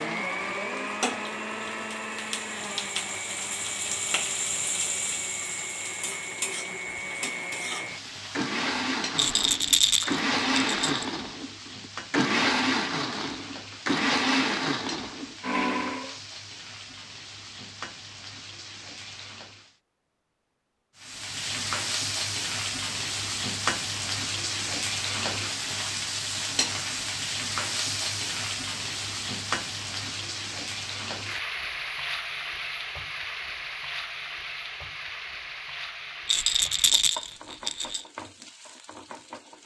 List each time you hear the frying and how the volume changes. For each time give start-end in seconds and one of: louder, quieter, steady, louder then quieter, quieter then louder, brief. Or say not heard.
0.0-19.8 quieter
21.0-39.6 quieter.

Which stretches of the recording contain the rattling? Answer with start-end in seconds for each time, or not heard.
9.2-11.1, 36.2-38.0.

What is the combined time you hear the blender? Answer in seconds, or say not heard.
16 s.